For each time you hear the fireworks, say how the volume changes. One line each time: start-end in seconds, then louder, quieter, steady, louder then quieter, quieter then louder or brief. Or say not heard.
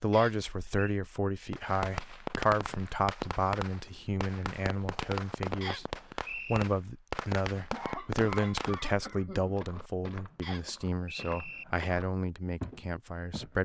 1.5-8.8 steady.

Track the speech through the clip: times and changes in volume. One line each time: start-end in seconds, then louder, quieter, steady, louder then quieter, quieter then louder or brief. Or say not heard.
0.0-13.6 steady.